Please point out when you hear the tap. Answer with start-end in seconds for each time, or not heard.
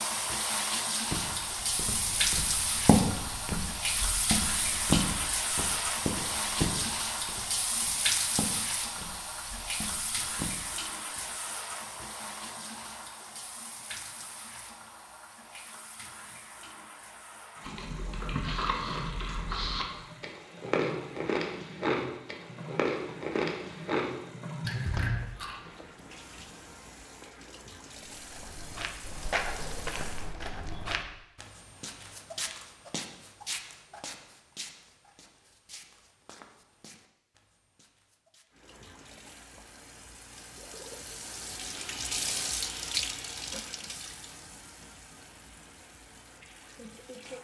0.0-30.4, 38.5-47.3.